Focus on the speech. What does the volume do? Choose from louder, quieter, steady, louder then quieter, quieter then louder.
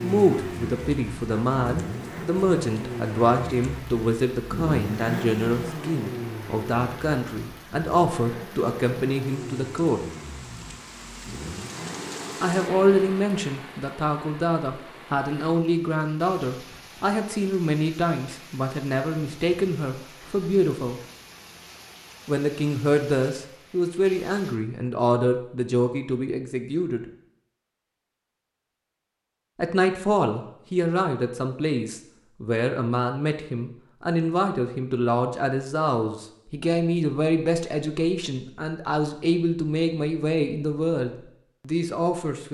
steady.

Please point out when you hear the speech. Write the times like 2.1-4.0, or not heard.
0.0-10.1, 12.4-21.0, 22.2-27.1, 29.6-42.4.